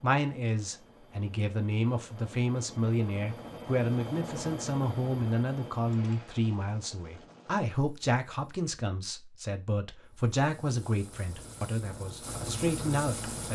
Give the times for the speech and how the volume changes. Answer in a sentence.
The speech can be heard from 0.0 to 13.5 s, at a steady volume.